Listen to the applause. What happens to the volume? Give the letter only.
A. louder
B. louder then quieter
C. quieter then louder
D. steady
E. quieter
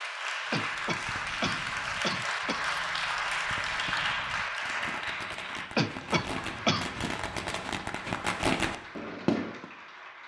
E.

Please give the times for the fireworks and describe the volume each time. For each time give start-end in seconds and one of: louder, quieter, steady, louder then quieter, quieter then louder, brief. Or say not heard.
0.6-9.7 louder.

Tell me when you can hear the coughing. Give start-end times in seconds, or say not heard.
0.5-2.6, 5.8-6.9.